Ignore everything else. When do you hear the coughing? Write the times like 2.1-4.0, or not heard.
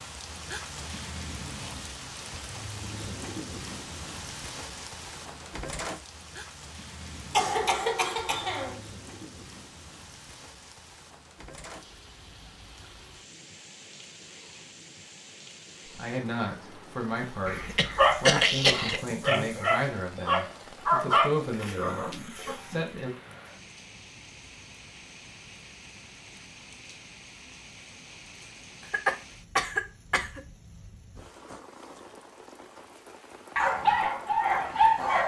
7.3-8.8, 17.4-19.0, 28.9-30.4.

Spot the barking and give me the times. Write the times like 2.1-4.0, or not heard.
17.1-22.9, 33.5-35.2.